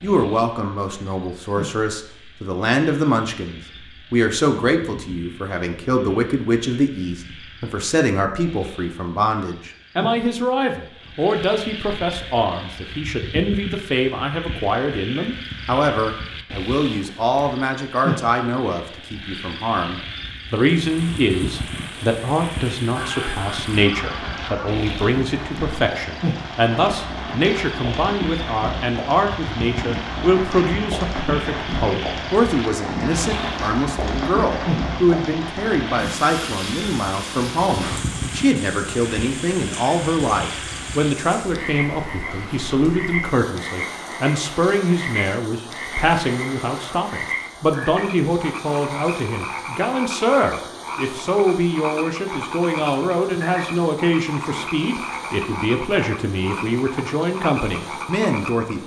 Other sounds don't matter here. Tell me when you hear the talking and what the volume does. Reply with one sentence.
The talking can be heard from 0.0 to 58.8 s, at a steady volume.